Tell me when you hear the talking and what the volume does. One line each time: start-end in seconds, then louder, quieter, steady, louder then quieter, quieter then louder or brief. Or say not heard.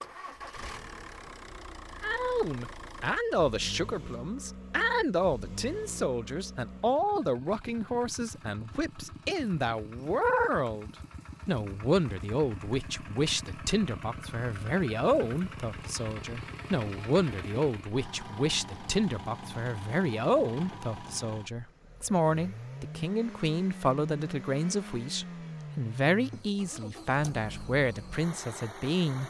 2.0-29.2 steady.